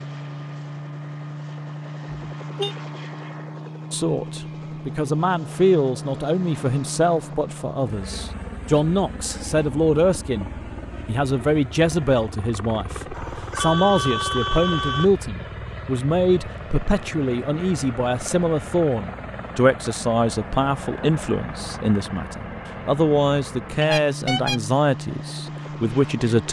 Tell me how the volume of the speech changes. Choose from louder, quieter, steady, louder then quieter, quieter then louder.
steady.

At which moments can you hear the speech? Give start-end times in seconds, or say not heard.
3.9-26.4.